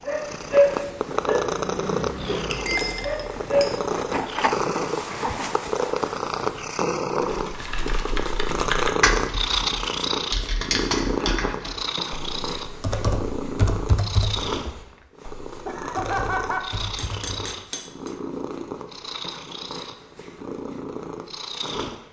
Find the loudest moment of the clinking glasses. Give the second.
3 s.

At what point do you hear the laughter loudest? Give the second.
16 s.